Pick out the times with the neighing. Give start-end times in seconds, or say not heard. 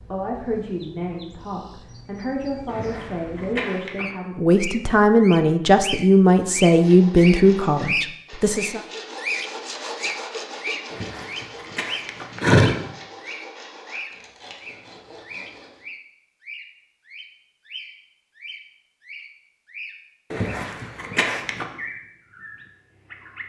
2.6-4.0, 10.9-12.8, 20.3-21.6.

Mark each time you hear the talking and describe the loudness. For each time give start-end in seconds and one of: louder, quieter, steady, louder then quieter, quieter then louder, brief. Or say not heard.
0.1-8.8 louder.